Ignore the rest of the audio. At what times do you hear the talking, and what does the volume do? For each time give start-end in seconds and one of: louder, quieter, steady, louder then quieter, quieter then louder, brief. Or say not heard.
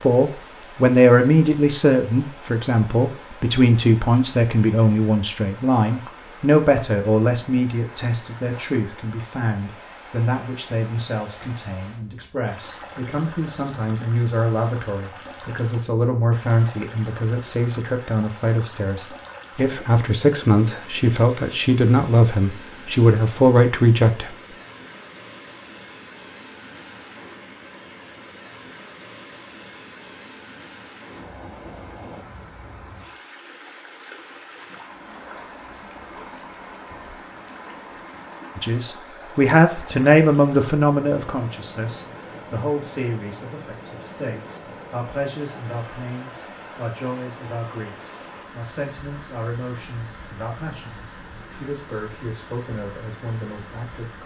0.0-24.4 quieter then louder
38.5-54.2 quieter.